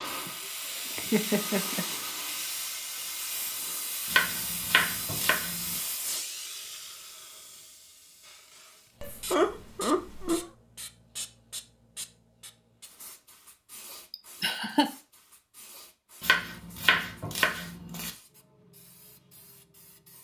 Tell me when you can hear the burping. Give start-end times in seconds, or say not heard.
not heard.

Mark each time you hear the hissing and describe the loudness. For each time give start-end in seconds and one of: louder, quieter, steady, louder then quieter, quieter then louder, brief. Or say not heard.
0.0-20.1 quieter.